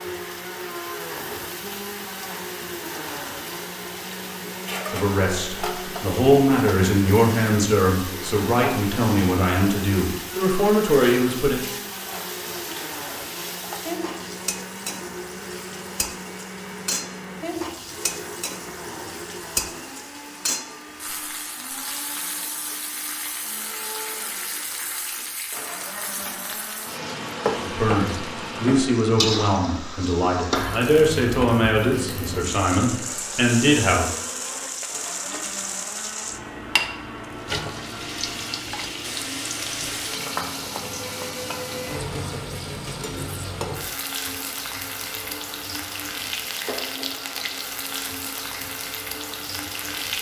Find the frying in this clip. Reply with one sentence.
The frying can be heard from 0.0 to 50.1 s.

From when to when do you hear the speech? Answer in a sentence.
The speech can be heard from 4.9 to 11.6 s and from 27.6 to 34.1 s.